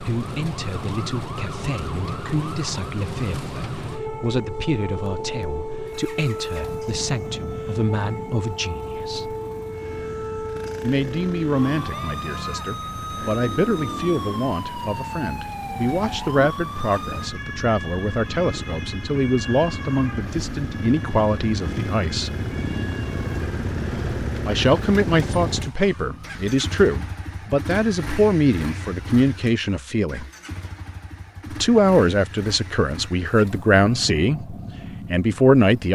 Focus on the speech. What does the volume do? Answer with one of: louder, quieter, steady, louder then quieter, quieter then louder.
louder.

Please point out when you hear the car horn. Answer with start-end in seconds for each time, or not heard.
not heard.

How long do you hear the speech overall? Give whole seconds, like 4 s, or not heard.
31 s.